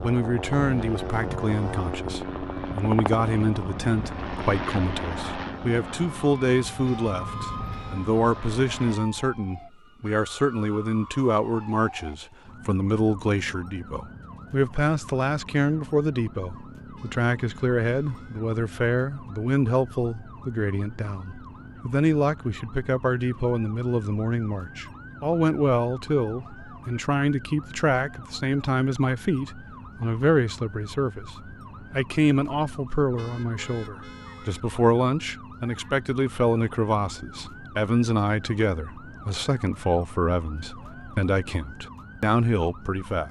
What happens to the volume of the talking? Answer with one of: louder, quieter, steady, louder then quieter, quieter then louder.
steady.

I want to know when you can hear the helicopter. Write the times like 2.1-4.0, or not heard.
0.0-9.0.